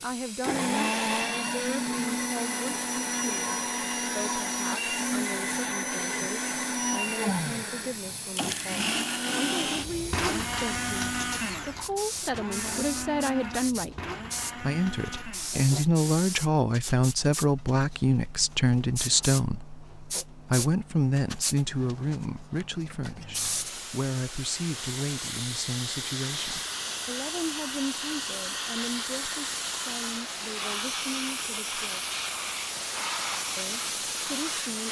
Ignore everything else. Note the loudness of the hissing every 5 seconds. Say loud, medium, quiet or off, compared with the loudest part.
medium, medium, medium, medium, medium, loud, loud.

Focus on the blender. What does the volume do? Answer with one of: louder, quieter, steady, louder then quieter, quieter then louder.
quieter.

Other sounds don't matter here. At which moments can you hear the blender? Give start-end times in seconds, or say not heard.
0.4-15.7.